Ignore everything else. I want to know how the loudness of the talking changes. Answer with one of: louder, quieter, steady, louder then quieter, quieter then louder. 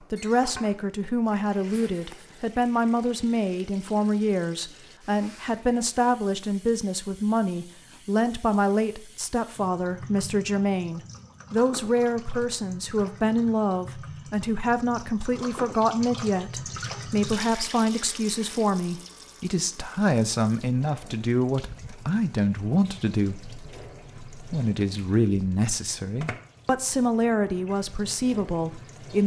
steady.